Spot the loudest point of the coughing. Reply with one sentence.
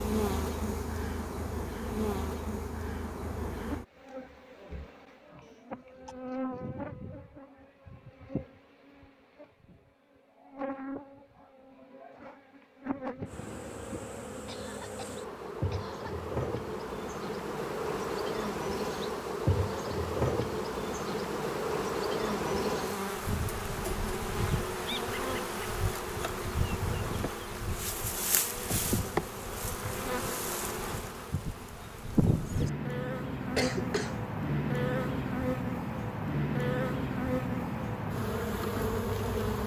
The loudest moment of the coughing is at 34 seconds.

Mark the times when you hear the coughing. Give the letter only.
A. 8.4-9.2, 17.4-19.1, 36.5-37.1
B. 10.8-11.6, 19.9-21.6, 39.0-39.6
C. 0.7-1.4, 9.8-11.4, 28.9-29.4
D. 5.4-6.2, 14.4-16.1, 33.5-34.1
D.